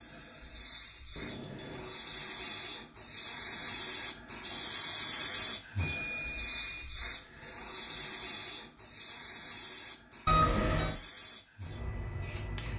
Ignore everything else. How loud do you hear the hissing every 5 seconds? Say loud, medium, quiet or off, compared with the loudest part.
loud, loud, medium.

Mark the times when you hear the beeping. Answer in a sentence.
You can hear the beeping from 1.1 to 2.0 s, from 6.0 to 6.8 s and from 10.2 to 11.0 s.